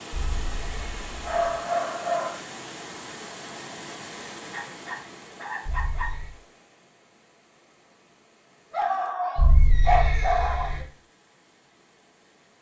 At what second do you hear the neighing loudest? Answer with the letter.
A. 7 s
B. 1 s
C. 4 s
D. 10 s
D.